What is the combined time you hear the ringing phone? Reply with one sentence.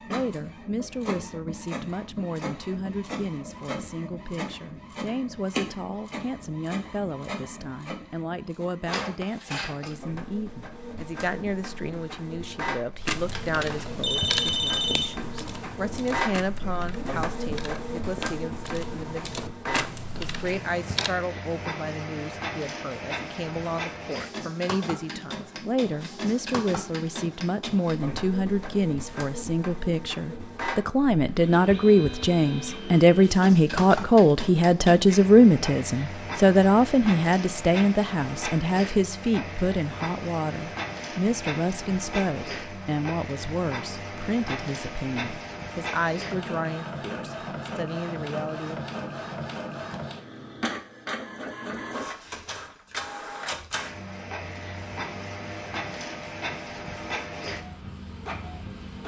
You can hear the ringing phone for 2 seconds altogether.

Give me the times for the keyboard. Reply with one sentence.
The keyboard can be heard from 13.1 to 21.1 s.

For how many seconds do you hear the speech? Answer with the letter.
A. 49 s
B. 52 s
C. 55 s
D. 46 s
A.